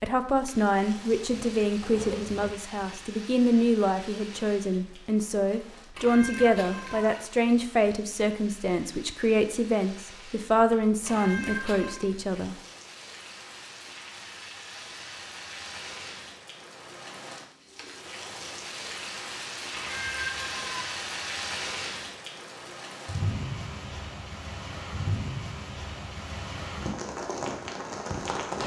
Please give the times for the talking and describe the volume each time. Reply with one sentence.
You can hear the talking from 0.0 to 12.6 s, at a steady volume.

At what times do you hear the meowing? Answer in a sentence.
The meowing can be heard from 5.9 to 7.2 s, from 11.0 to 12.0 s and from 19.8 to 20.9 s.